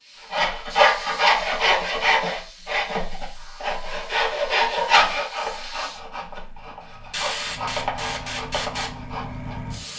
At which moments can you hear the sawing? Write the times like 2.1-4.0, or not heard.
0.3-9.6.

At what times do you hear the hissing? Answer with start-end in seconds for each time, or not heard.
0.0-9.9.